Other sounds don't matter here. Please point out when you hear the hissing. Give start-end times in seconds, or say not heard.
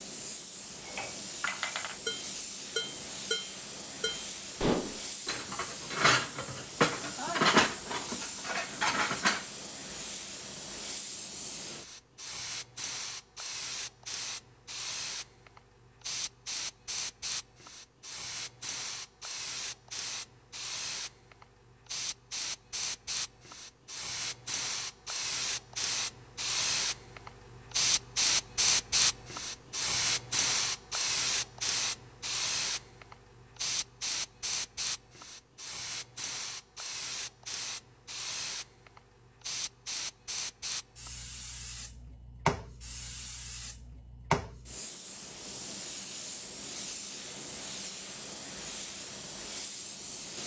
0.0-50.4.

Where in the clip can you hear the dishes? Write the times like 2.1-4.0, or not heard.
0.8-9.4.